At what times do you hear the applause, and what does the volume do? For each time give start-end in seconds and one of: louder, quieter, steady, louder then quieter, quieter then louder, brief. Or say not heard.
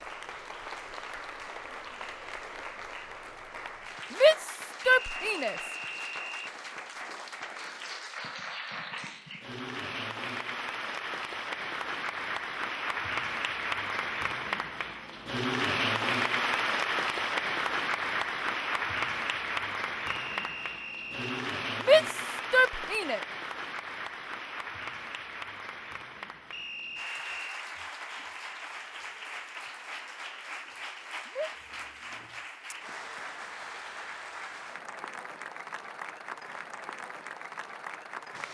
0.0-38.4 louder then quieter.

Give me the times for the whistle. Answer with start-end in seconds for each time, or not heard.
5.0-6.5, 20.1-21.4, 26.5-27.6.